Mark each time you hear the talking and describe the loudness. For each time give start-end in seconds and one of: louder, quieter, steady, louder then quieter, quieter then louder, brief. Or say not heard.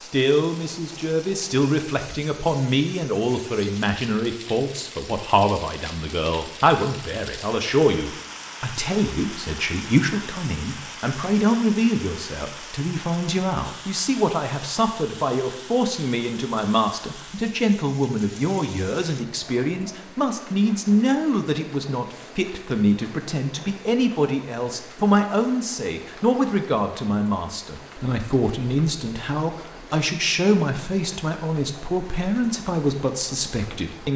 0.0-34.1 steady.